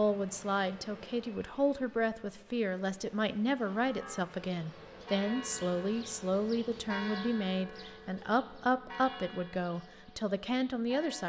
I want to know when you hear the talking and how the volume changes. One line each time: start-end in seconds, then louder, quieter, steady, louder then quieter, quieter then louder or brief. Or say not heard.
0.0-11.2 steady.